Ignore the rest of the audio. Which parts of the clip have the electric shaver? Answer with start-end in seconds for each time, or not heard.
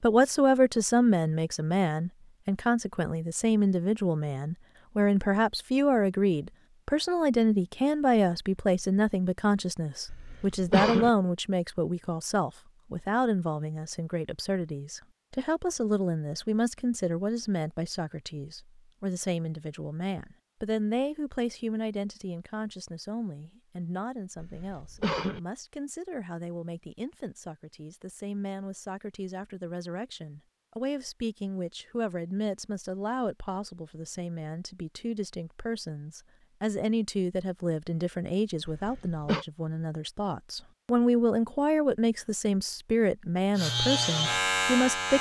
43.5-45.1.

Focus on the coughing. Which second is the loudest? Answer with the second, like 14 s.
11 s.